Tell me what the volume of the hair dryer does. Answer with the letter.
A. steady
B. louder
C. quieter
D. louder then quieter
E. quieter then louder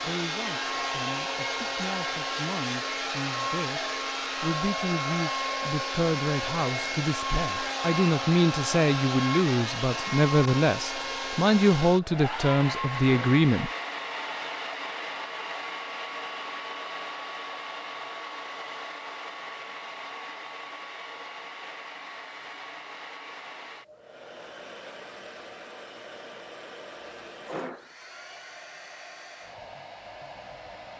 C.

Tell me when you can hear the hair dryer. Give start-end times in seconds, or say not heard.
0.0-30.9.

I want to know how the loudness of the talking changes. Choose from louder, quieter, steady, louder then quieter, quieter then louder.
louder.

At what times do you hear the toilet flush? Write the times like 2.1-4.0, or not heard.
not heard.